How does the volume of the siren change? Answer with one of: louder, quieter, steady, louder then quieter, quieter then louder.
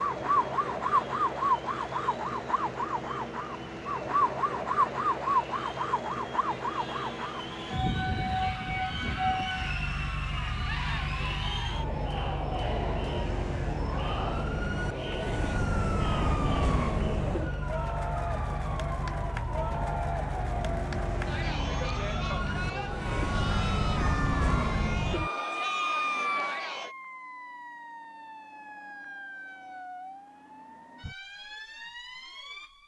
quieter.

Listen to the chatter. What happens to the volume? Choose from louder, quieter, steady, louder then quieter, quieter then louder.
louder.